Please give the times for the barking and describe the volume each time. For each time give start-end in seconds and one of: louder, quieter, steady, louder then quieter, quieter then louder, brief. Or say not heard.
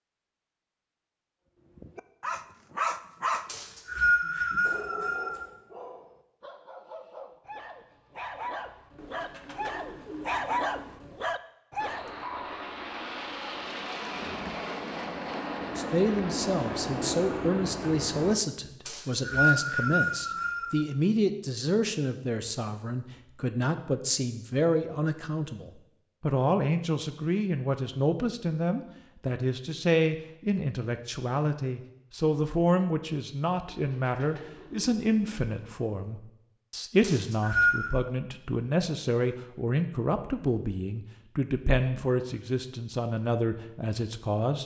1.8-12.1 quieter then louder.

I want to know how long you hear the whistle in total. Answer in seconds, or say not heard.
5 s.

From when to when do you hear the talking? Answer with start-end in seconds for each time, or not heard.
15.8-44.6.